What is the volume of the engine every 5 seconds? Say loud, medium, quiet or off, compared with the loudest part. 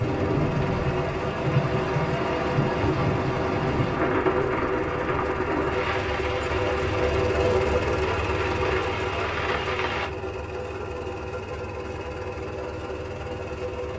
medium, loud, medium.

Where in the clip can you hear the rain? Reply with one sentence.
You can hear the rain from 0.0 to 10.1 s.